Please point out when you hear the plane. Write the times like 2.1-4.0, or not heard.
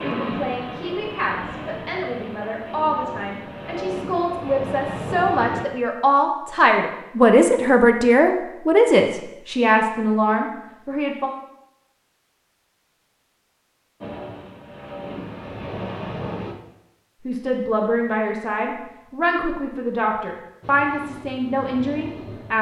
0.0-5.7, 14.0-16.6, 20.6-22.5.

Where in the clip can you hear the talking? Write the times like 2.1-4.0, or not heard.
0.0-11.3, 17.2-22.5.